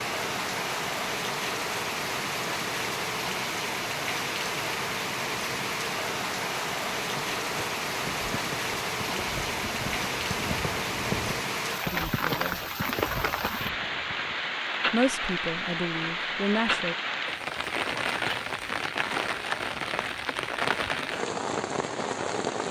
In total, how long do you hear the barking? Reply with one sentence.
The barking can't be heard in this clip.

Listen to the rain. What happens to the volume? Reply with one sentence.
The loudness of the rain stays about the same.